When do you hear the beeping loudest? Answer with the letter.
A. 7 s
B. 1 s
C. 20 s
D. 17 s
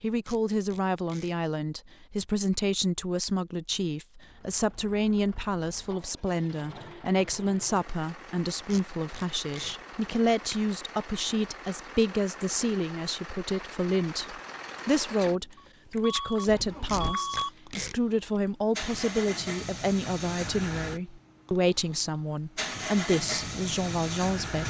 D.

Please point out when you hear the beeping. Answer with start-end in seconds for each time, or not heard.
15.6-17.5.